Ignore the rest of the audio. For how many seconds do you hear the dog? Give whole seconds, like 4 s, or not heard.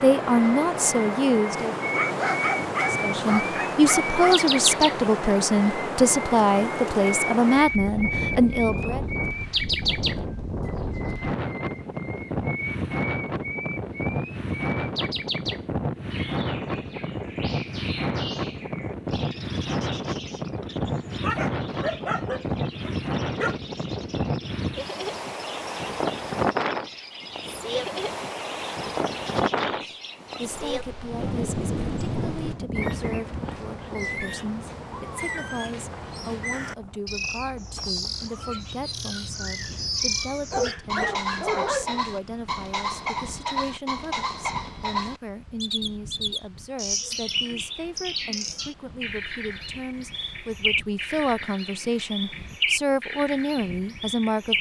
7 s.